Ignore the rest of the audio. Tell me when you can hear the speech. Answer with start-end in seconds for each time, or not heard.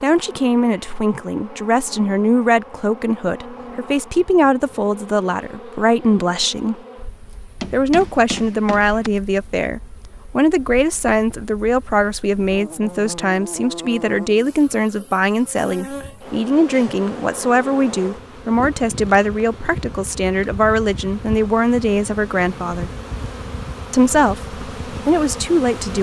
0.0-6.8, 7.7-22.9, 23.9-25.9.